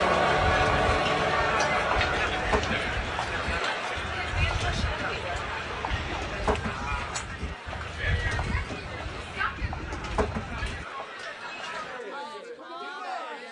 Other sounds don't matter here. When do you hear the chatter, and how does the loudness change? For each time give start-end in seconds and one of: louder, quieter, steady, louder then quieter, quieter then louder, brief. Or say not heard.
0.0-13.4 quieter.